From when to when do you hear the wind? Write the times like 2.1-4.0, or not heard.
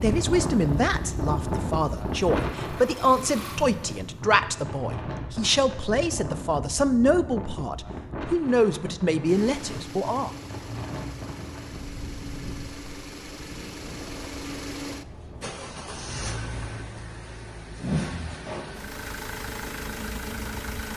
0.0-17.1.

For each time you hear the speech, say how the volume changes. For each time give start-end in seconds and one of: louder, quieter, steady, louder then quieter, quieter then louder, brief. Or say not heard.
0.0-10.3 steady.